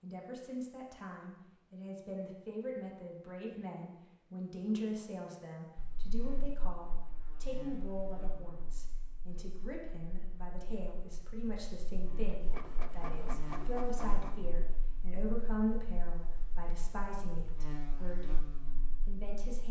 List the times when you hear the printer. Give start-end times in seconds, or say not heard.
12.2-14.3.